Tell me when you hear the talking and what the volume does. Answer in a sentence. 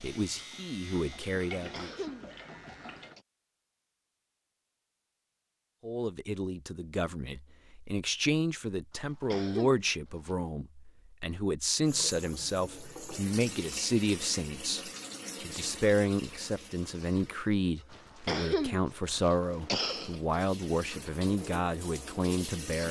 You can hear the talking briefly from 0.0 to 1.9 s; and from 5.8 to 22.8 s, at a steady volume.